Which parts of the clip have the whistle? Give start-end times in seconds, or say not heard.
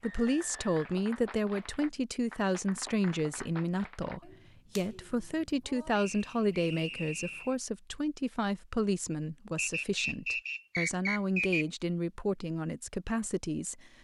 0.0-1.8, 5.9-7.5, 9.6-11.7.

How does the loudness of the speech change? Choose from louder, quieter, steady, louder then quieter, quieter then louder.
steady.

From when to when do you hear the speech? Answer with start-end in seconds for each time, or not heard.
0.0-13.9.